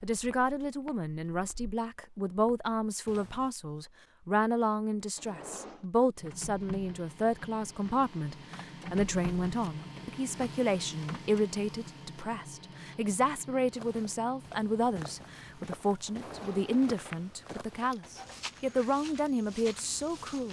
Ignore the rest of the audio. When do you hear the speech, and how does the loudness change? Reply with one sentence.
The speech can be heard from 0.0 to 20.4 s, at a steady volume.